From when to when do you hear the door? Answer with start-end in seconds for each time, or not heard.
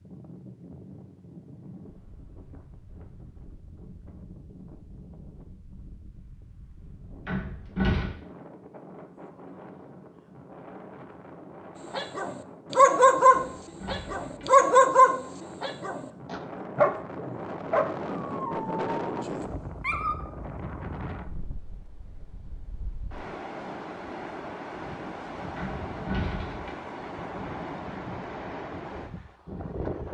7.2-8.1, 13.2-14.7, 25.6-26.8.